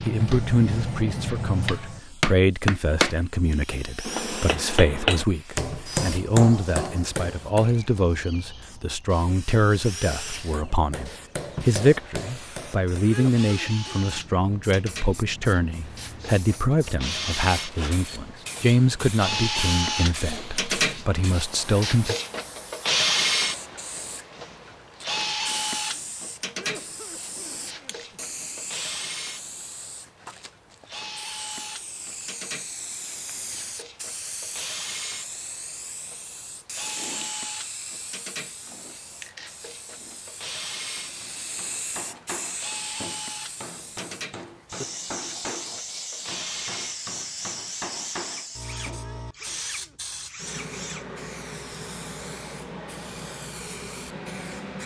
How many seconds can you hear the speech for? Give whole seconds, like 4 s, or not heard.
22 s.